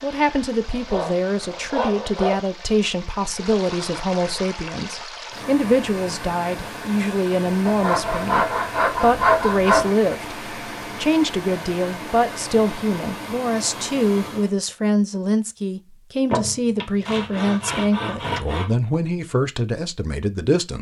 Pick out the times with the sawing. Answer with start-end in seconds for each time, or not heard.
0.2-2.4, 7.7-9.9, 16.3-18.8.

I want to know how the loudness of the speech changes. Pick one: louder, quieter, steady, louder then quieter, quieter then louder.
steady.